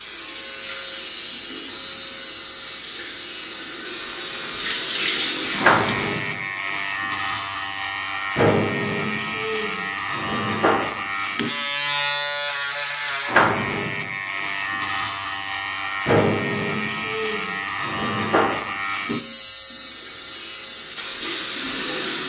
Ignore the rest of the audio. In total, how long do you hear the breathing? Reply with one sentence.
You can't hear the breathing here.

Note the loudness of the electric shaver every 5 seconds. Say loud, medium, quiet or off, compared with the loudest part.
medium, loud, loud, loud, medium.